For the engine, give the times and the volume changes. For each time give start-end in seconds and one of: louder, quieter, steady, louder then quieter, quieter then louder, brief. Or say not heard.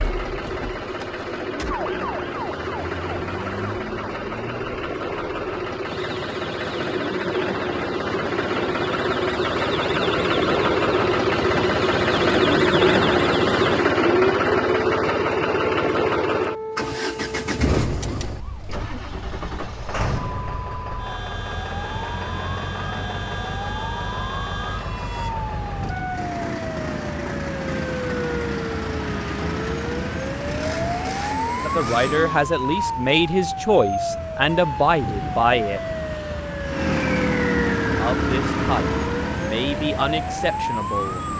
0.0-32.5 louder then quieter
36.6-41.3 quieter.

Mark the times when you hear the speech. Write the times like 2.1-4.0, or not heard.
31.6-35.8, 38.0-41.2.